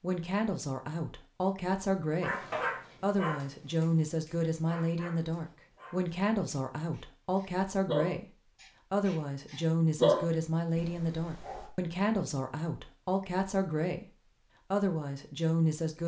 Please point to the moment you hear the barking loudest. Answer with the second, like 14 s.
10 s.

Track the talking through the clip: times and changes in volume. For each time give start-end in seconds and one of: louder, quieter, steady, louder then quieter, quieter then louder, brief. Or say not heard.
0.0-16.0 steady.